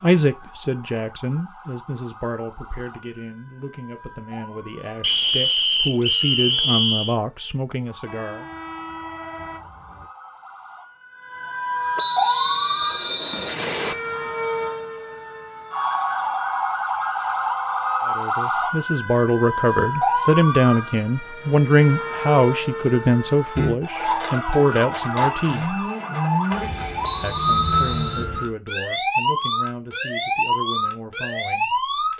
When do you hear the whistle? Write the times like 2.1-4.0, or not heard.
5.0-7.2, 11.9-13.9, 27.0-28.2.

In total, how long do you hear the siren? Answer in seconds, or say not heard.
32 s.